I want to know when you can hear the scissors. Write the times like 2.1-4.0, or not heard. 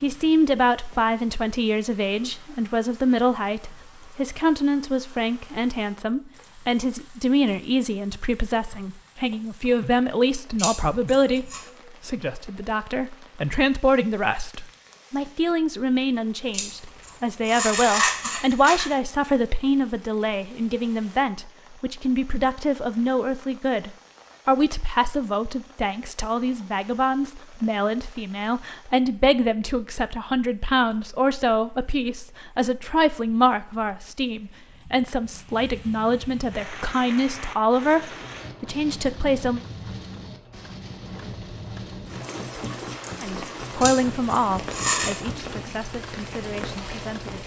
10.6-11.6, 16.5-18.9, 43.8-45.1.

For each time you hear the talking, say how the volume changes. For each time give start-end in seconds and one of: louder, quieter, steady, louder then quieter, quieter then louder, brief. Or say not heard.
0.0-39.6 steady
43.2-47.4 quieter.